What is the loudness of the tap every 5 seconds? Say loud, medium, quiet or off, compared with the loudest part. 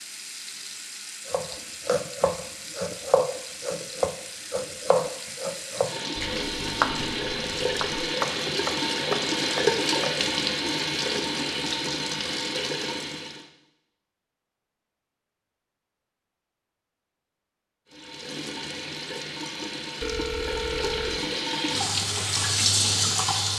quiet, loud, loud, medium, loud.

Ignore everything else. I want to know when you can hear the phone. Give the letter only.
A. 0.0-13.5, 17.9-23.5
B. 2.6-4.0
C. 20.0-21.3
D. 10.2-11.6
C.